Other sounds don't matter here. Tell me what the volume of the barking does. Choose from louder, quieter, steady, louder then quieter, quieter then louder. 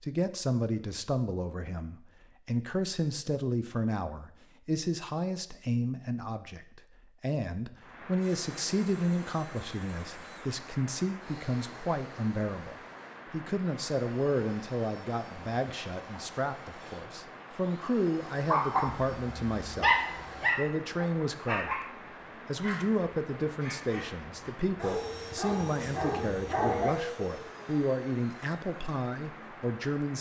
quieter then louder.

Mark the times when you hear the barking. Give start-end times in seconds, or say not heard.
18.5-26.9.